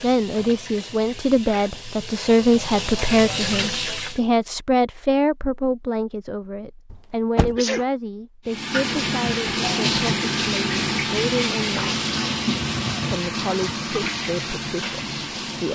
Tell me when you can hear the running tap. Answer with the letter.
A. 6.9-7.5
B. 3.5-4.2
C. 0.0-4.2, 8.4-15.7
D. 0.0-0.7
C.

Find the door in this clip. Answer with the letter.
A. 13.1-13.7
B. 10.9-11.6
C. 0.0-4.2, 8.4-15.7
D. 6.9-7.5
D.